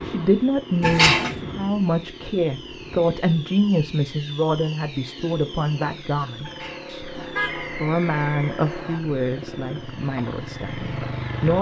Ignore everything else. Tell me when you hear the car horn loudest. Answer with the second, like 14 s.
1 s.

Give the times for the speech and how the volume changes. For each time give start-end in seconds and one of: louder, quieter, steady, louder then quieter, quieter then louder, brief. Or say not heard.
0.0-11.5 quieter.